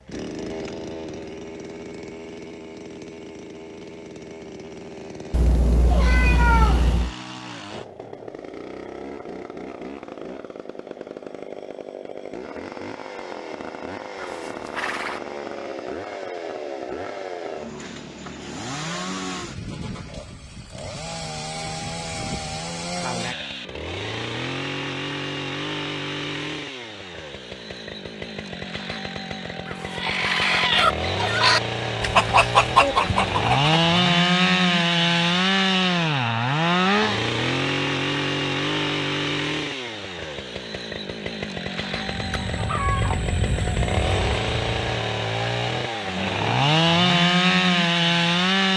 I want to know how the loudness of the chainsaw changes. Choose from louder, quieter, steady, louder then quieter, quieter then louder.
louder.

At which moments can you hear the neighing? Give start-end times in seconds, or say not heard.
14.2-15.2, 29.6-30.6.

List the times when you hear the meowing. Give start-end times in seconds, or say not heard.
5.3-7.2.